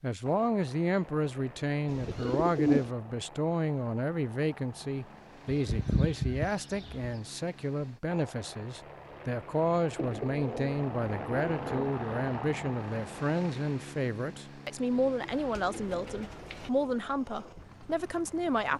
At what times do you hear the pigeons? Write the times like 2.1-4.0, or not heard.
1.9-2.9, 5.5-7.1, 9.9-11.9, 14.9-16.7.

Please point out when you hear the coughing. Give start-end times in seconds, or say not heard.
not heard.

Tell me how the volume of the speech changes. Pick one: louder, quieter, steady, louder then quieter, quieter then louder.
steady.